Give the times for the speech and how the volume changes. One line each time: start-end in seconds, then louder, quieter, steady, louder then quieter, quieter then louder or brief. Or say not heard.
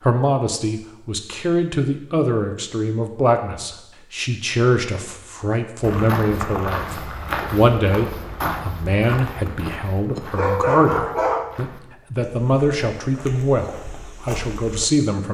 0.1-15.2 steady.